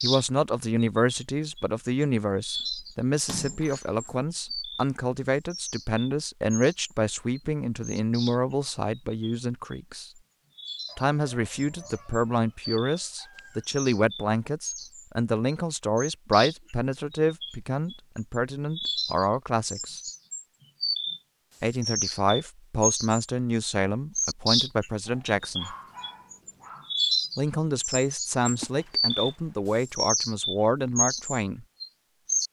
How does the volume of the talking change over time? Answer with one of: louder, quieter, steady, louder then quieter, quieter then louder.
steady.